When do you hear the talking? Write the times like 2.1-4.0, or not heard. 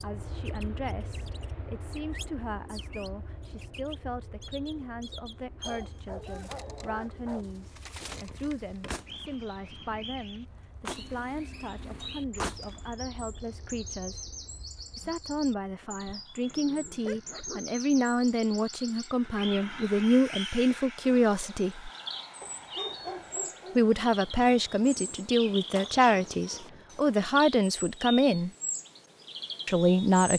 0.0-14.2, 14.9-21.9, 23.8-28.5, 29.6-30.3.